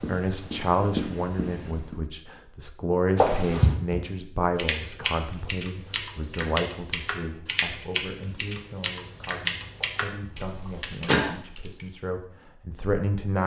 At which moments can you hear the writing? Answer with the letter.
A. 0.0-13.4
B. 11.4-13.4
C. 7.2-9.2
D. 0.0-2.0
D.